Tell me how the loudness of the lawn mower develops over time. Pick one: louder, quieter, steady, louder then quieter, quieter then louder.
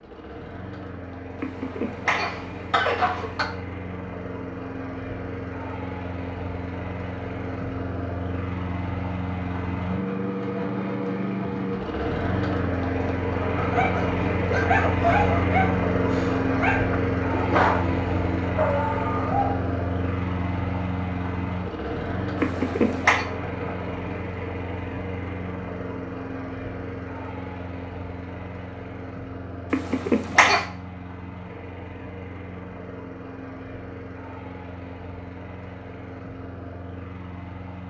louder then quieter.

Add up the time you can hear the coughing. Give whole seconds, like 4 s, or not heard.
4 s.